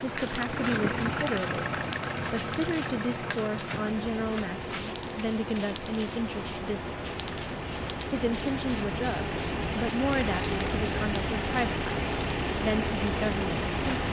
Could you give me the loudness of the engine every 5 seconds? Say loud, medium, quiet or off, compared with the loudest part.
loud, medium, loud.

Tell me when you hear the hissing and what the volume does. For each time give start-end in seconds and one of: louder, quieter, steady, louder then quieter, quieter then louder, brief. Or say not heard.
0.0-14.0 steady.